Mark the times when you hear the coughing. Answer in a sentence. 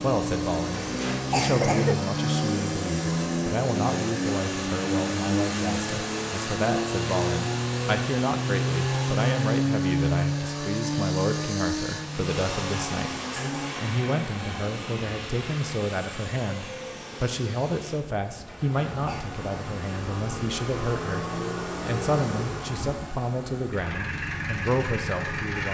The coughing can be heard from 0.7 to 1.9 s and from 18.4 to 19.4 s.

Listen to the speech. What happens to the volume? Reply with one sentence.
The loudness of the speech stays about the same.